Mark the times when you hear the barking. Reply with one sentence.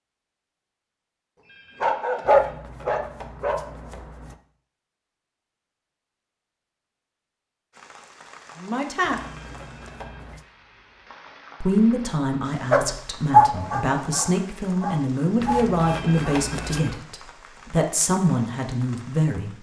The barking can be heard from 1.8 to 3.5 s and from 12.7 to 16.4 s.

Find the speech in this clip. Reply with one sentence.
The speech can be heard from 8.6 to 9.2 s and from 11.6 to 19.5 s.